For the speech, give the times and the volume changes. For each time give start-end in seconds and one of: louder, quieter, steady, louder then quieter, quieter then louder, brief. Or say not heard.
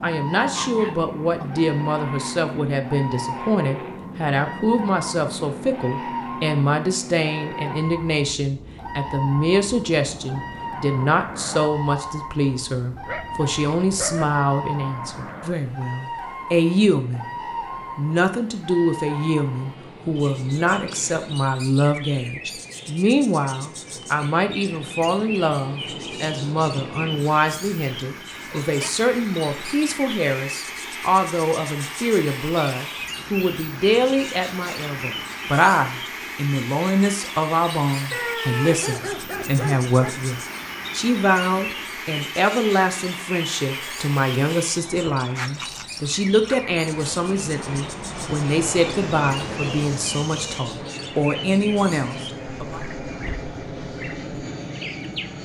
0.0-17.3 steady
17.9-52.8 steady.